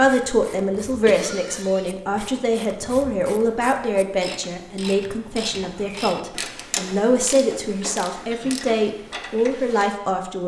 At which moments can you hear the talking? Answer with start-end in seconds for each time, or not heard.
0.0-10.4.